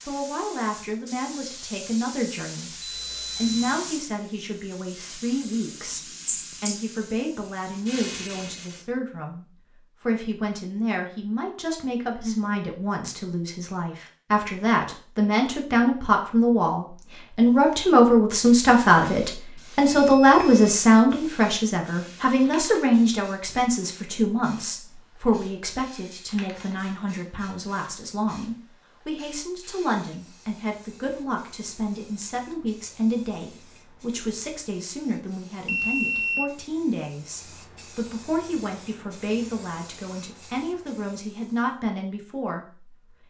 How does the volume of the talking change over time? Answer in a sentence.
The loudness of the talking goes up, then down.